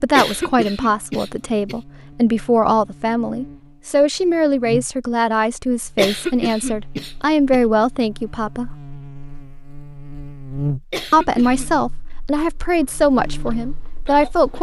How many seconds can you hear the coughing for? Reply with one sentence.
The coughing can be heard for 4 seconds in total.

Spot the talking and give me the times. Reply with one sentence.
You can hear the talking from 0.0 to 8.7 s and from 11.1 to 14.5 s.